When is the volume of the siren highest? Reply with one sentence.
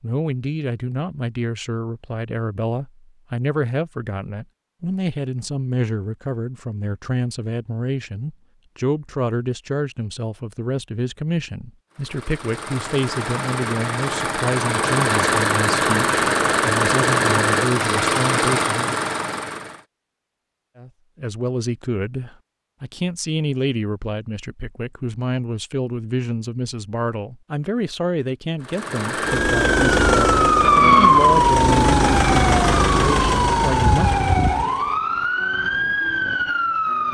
The loudest moment of the siren is at 31 seconds.